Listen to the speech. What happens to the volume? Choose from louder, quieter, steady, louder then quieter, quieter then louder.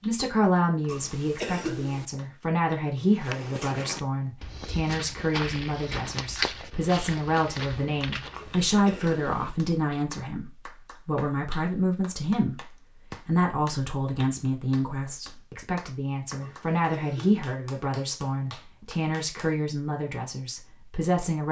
steady.